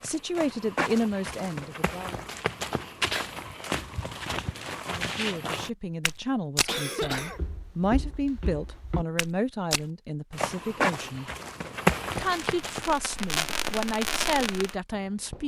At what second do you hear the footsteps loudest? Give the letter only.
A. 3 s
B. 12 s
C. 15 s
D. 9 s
B.